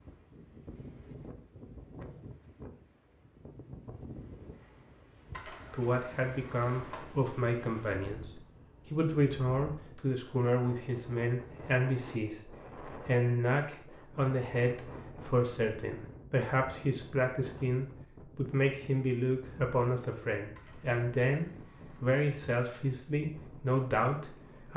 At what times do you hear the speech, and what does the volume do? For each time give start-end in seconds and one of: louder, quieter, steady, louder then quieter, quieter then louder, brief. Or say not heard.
5.7-24.7 steady.